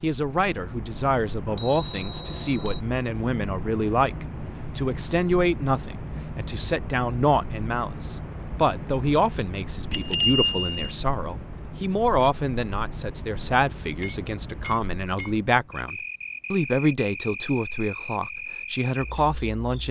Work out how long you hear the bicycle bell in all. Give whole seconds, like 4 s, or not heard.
4 s.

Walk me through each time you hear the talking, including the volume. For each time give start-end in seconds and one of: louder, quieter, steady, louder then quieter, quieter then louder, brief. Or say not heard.
0.0-19.8 steady.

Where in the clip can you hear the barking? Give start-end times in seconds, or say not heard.
not heard.